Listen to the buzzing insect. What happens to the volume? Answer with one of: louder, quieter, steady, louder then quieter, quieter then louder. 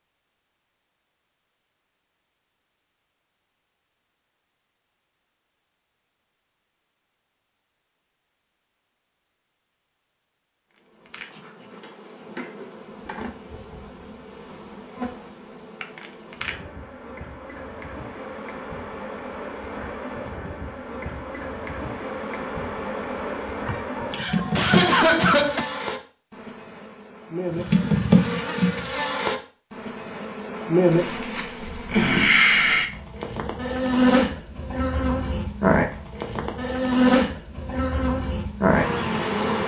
louder.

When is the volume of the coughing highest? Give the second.
25 s.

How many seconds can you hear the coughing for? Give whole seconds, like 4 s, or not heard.
2 s.